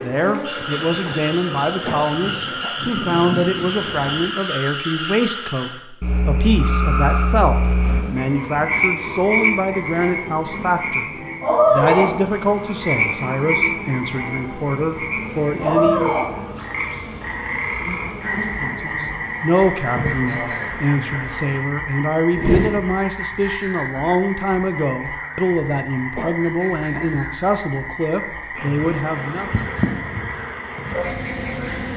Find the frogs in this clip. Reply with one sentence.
The frogs can be heard from 0.0 to 31.9 s.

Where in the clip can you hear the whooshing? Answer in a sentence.
The whooshing can be heard from 22.4 to 22.9 s.